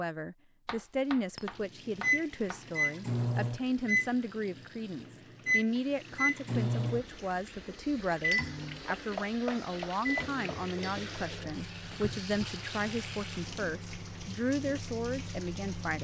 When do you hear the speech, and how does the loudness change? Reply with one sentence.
You can hear the speech from 0.0 to 16.0 s, at a steady volume.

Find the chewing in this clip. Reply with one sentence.
The chewing can't be heard in this clip.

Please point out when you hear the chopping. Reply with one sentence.
The chopping can be heard from 0.7 to 2.6 s and from 8.9 to 10.4 s.